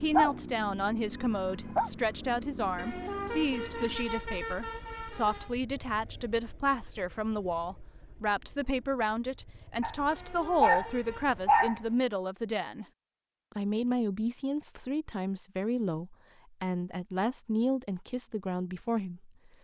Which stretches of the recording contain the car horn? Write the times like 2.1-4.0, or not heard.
2.8-5.5, 10.1-11.3.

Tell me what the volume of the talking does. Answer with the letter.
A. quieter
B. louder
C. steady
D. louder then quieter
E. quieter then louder
C.